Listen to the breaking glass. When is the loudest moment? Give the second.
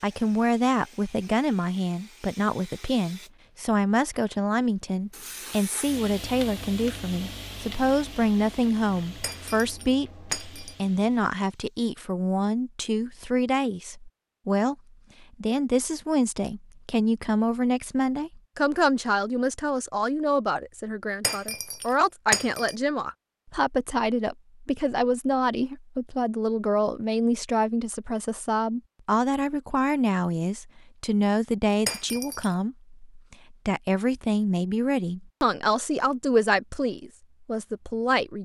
22 s.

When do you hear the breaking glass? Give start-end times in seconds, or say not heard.
9.2-10.8, 21.2-22.8, 31.9-32.5.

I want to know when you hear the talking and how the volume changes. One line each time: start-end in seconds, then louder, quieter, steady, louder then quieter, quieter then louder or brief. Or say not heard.
0.0-38.4 steady.